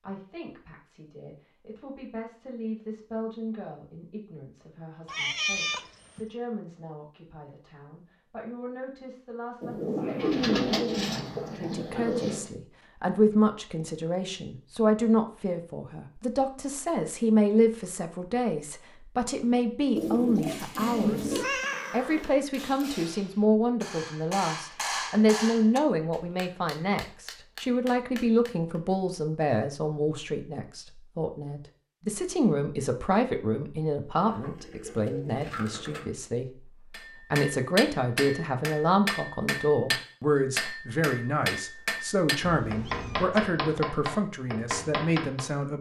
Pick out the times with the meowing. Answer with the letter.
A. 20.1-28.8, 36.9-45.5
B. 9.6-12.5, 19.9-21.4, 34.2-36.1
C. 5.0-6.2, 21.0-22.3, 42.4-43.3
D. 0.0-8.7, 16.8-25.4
C.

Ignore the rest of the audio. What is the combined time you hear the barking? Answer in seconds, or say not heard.
not heard.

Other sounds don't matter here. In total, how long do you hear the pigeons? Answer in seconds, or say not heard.
6 s.